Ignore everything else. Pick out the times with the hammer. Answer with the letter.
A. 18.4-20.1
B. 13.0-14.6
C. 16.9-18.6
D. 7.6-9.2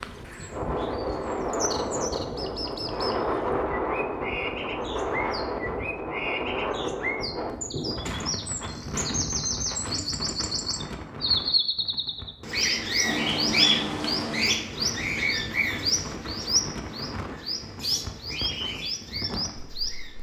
B.